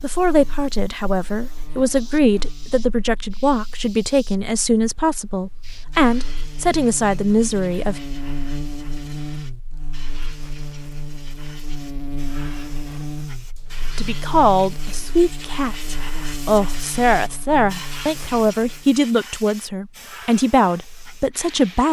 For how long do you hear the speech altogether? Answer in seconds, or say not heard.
16 s.